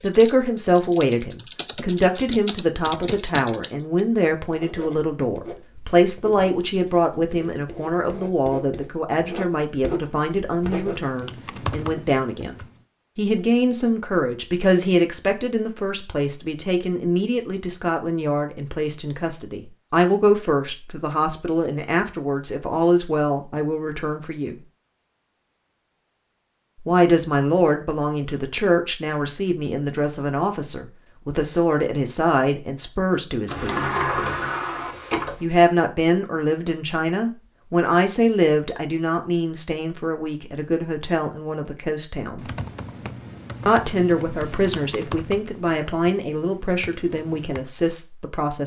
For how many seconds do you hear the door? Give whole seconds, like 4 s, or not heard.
2 s.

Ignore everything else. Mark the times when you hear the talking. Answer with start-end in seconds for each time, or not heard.
0.0-24.6, 26.9-34.0, 35.4-42.5, 43.6-48.6.